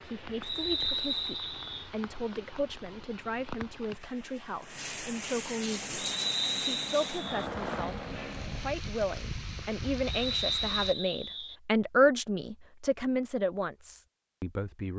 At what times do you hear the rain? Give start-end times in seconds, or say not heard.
0.0-10.9.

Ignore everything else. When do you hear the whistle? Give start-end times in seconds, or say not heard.
0.4-1.9, 6.0-7.5, 10.1-11.6.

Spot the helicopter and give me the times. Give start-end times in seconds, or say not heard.
5.7-8.8.